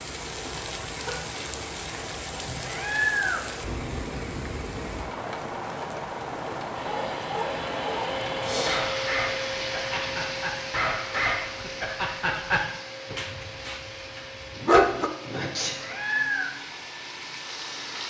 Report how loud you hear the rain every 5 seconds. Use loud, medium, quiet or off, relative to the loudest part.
loud, loud, medium, medium.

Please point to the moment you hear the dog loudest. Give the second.
15 s.